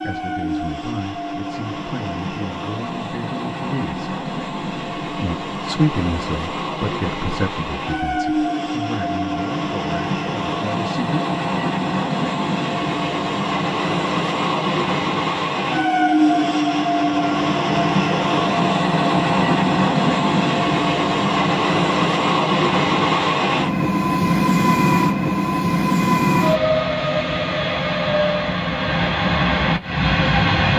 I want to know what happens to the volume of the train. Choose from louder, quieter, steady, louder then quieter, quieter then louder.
louder.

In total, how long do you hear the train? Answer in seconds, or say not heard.
31 s.